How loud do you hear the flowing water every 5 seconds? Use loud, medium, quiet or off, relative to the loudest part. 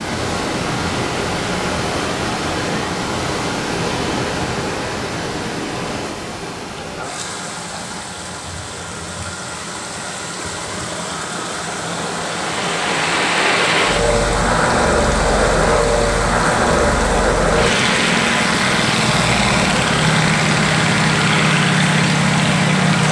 loud, medium, loud, loud, loud.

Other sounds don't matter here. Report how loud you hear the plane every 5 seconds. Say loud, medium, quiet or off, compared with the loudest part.
off, off, loud, loud, loud.